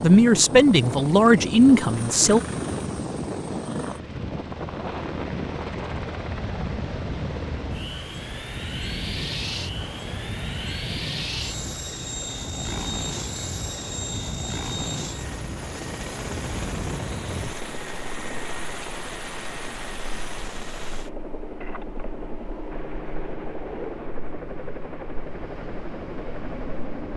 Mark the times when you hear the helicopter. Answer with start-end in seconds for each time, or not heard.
0.0-27.1.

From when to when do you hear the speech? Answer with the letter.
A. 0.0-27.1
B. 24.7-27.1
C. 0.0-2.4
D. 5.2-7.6
C.